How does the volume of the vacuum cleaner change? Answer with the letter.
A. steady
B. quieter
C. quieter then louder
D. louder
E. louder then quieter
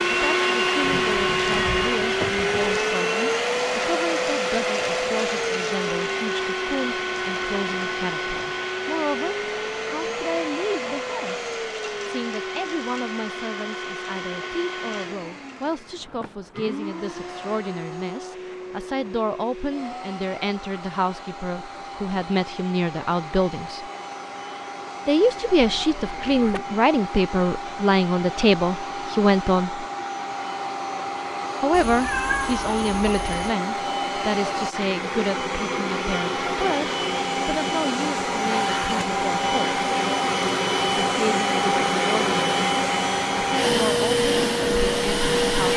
C.